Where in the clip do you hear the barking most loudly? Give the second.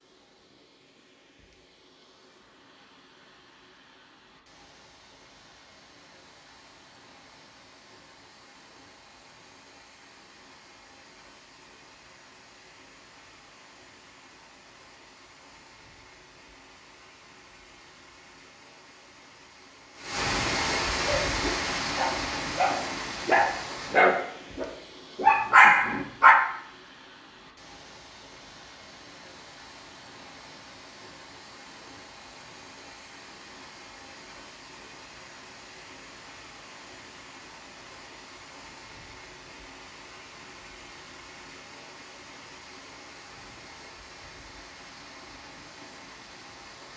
26 s.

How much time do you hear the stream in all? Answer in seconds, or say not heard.
47 s.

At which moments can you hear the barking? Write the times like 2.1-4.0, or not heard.
21.0-26.4.